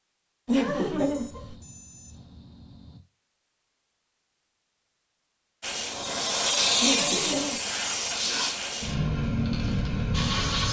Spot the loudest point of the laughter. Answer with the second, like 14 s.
1 s.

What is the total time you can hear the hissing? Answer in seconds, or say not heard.
5 s.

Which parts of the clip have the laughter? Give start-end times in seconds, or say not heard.
0.5-1.6, 6.8-7.6.